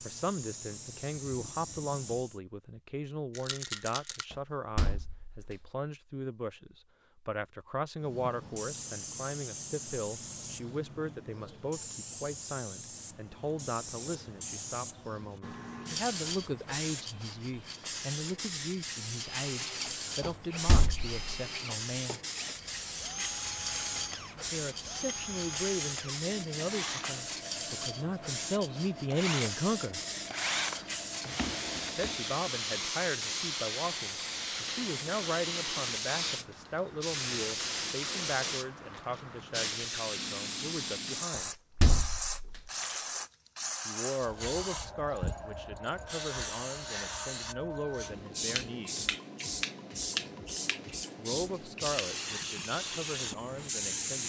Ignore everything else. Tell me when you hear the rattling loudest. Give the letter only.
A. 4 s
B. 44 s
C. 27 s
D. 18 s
A.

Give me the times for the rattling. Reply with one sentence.
You can hear the rattling from 3.4 to 4.2 s and from 42.7 to 43.2 s.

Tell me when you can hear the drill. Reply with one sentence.
You can hear the drill from 19.1 to 32.4 s.